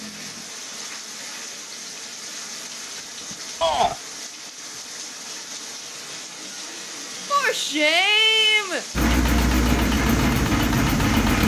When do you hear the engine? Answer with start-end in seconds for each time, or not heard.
8.9-11.4.